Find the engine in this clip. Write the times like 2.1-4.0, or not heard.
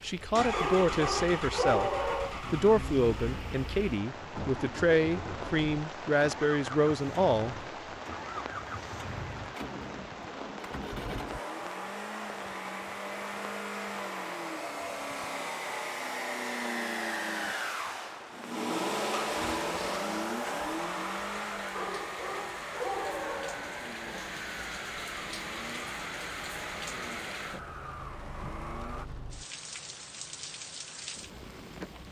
0.0-29.1.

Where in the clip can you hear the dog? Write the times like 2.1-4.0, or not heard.
0.5-2.4, 21.7-23.7.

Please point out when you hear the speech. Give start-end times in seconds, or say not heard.
0.0-7.6.